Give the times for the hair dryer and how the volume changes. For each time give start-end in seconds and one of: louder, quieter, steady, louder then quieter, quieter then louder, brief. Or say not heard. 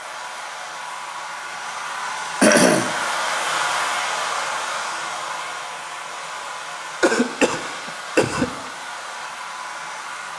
0.0-10.3 louder then quieter.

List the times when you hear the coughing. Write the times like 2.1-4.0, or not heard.
2.4-3.0, 7.0-8.5.